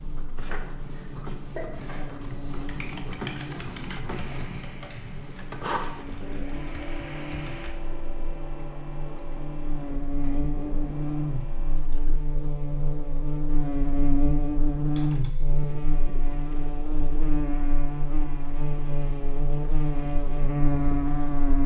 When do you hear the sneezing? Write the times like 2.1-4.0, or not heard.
0.9-2.1.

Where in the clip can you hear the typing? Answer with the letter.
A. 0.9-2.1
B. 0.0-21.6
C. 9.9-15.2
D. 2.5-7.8
D.